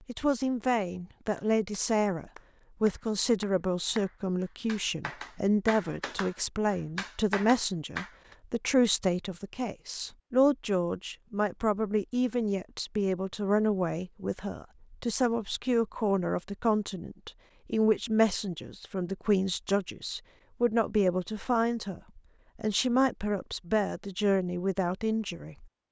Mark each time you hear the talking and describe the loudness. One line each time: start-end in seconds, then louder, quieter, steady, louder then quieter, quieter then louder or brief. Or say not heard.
0.1-25.6 steady.